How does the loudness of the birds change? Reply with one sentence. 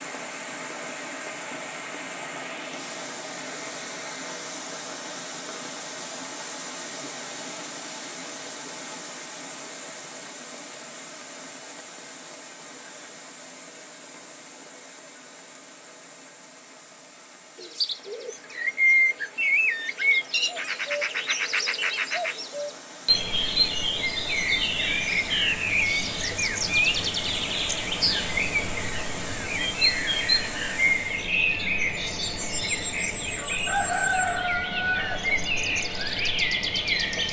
The loudness of the birds stays about the same.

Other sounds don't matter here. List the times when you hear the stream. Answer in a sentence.
You can hear the stream from 0.0 to 31.4 s.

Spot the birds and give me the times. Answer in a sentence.
You can hear the birds from 17.6 to 37.2 s.